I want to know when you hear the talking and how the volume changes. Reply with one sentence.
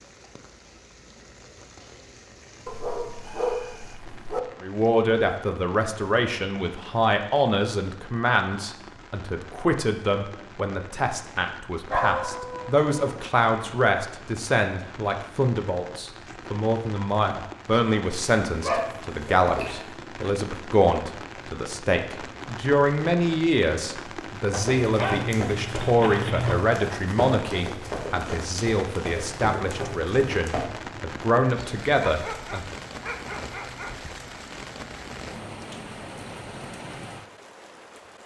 You can hear the talking from 4.6 to 32.8 s, at a steady volume.